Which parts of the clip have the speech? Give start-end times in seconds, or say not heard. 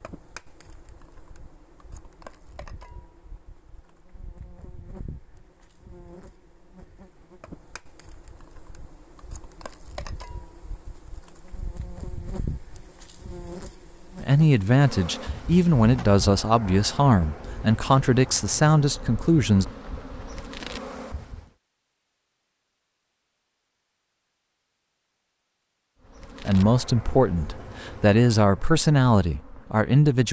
14.2-19.6, 26.4-30.2.